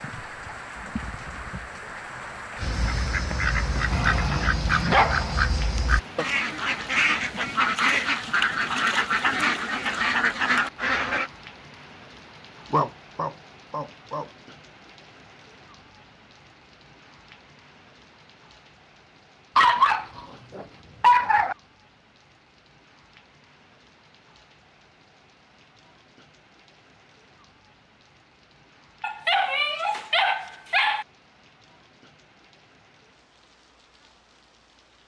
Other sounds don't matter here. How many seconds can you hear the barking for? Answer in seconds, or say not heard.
7 s.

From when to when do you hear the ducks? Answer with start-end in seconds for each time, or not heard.
2.5-11.3.